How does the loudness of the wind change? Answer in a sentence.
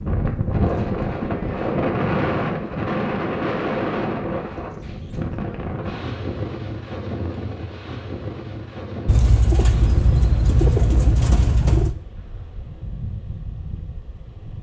The volume of the wind goes down.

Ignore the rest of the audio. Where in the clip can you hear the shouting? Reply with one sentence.
The shouting can't be heard in this clip.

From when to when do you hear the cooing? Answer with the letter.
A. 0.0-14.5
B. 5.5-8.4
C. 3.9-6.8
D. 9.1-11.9
D.